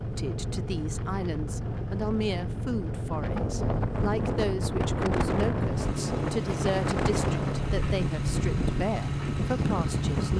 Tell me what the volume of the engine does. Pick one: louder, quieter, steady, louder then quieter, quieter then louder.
steady.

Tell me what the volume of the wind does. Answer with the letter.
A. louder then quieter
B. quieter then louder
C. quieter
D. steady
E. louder
E.